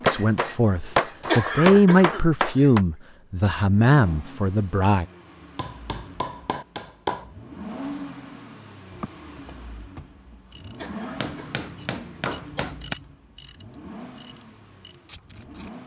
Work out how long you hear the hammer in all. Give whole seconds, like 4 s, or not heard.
6 s.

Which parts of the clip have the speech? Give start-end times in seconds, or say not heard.
0.0-5.0.